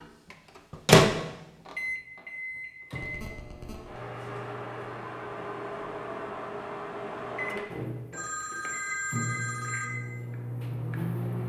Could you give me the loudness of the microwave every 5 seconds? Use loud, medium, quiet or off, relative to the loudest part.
loud, medium, medium.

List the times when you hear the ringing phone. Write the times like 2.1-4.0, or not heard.
3.0-3.9, 8.1-9.8.